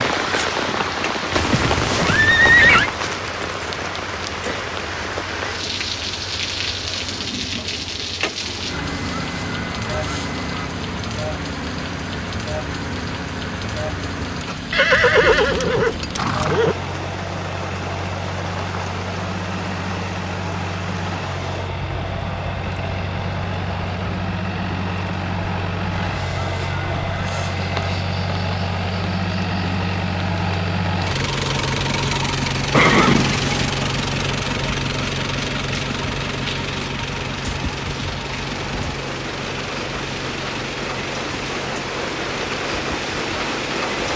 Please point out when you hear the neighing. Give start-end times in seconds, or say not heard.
1.3-2.9, 14.7-16.8, 32.7-33.6.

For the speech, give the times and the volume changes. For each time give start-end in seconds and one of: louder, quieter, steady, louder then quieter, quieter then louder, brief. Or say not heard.
not heard.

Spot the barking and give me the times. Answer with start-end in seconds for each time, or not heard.
not heard.